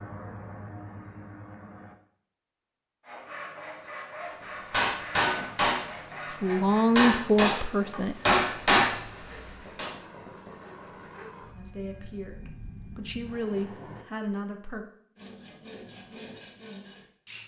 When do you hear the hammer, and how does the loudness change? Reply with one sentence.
The hammer can be heard from 4.7 to 9.9 s, getting quieter then louder.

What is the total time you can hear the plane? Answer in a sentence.
You can hear the plane for 7 seconds altogether.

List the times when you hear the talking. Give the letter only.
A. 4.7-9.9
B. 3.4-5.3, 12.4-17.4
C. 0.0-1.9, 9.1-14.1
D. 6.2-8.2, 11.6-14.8
D.